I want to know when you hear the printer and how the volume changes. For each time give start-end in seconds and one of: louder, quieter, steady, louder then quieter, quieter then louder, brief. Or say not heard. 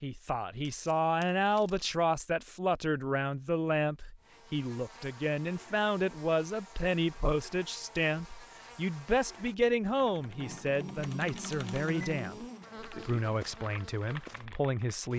not heard.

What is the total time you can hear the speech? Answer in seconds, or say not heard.
15 s.